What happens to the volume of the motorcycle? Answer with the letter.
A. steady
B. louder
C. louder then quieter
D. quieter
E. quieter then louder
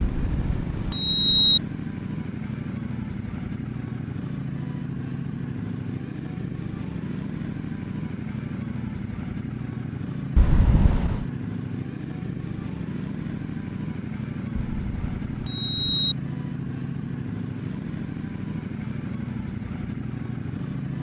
A.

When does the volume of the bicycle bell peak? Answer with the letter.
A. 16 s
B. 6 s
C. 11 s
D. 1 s
D.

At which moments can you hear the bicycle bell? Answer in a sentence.
The bicycle bell can be heard from 0.0 to 1.6 s, from 10.3 to 11.2 s and from 14.7 to 16.1 s.